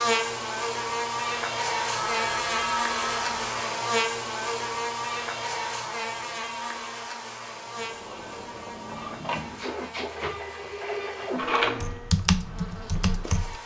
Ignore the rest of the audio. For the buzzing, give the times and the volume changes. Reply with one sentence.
The buzzing can be heard from 0.0 to 13.6 s, getting quieter.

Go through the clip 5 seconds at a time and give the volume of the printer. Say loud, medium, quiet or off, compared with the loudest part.
off, medium, loud.